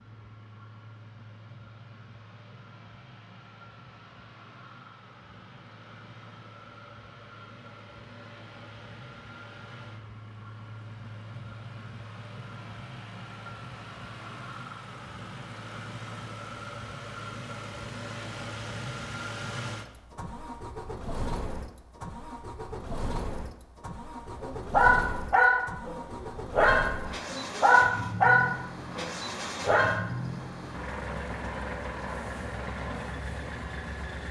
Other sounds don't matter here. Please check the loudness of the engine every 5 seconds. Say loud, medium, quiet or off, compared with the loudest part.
quiet, medium, medium, loud, loud, loud, loud.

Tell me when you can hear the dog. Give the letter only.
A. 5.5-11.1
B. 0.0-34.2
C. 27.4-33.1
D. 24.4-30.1
D.